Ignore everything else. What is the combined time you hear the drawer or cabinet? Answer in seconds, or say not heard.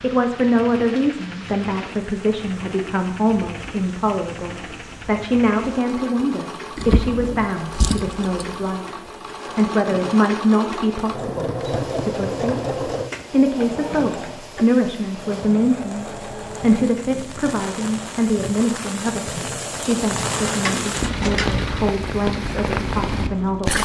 3 s.